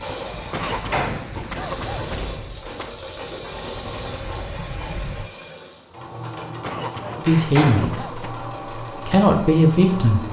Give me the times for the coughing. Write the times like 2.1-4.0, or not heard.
0.5-3.0, 6.6-8.4.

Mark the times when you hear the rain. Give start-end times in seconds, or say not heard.
0.1-5.3.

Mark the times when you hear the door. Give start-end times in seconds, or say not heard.
0.6-1.3, 7.2-8.0.